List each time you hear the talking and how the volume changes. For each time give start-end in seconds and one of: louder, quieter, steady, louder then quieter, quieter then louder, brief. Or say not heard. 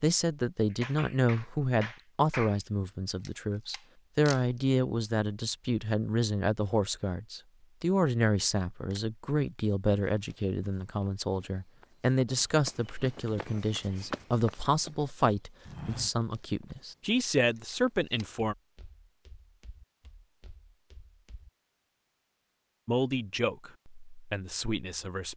0.0-18.6 steady
22.9-25.3 brief.